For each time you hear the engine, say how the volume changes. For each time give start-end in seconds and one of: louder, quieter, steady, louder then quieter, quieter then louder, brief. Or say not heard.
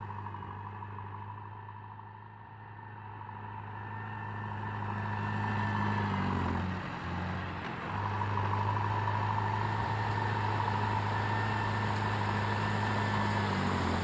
0.0-13.9 louder.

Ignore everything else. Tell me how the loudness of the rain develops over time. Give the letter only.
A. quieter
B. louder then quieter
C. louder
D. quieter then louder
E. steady
C.